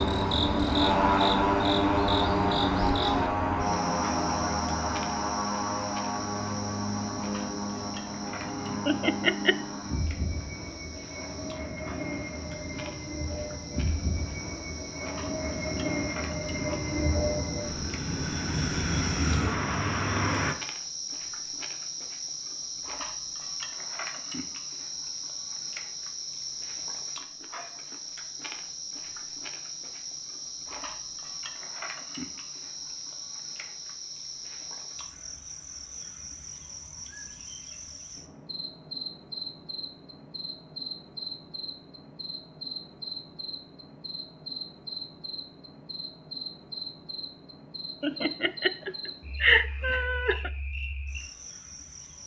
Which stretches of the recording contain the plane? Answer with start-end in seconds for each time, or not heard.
0.0-20.6.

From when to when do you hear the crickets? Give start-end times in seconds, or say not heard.
0.0-52.2.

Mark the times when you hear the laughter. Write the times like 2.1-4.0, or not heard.
8.8-9.6, 48.0-50.5.